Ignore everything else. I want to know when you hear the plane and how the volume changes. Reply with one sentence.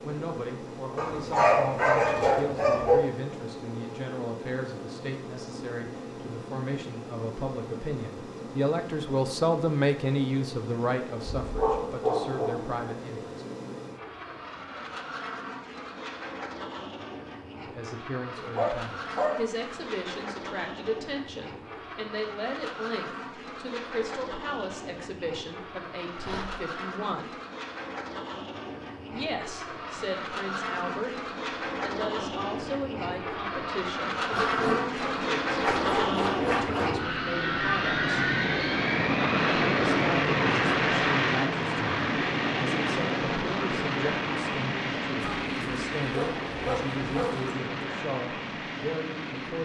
You can hear the plane from 0.0 to 49.6 s, getting louder.